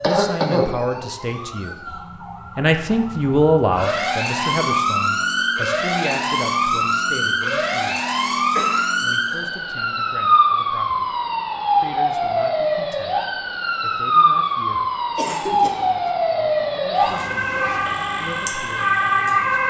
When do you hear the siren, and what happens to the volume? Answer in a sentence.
The siren can be heard from 0.0 to 19.6 s, getting louder.